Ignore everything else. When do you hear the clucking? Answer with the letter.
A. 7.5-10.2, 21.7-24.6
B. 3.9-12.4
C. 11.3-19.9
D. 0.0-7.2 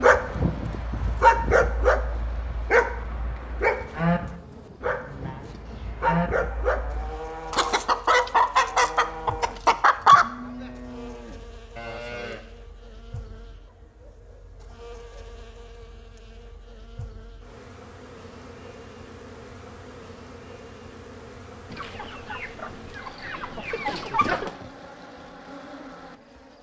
A.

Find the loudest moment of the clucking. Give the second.
10 s.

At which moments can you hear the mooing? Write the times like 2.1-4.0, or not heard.
3.9-12.4.